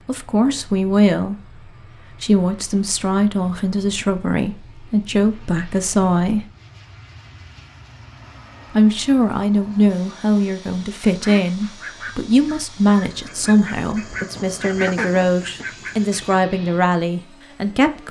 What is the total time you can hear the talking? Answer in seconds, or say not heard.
16 s.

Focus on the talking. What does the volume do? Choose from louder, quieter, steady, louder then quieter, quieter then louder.
steady.